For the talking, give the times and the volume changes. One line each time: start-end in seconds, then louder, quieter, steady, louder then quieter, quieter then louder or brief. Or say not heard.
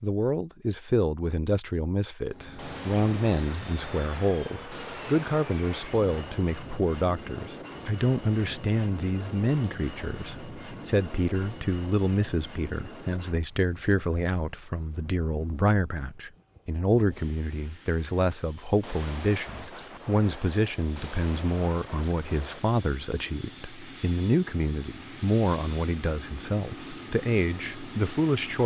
0.0-28.6 steady.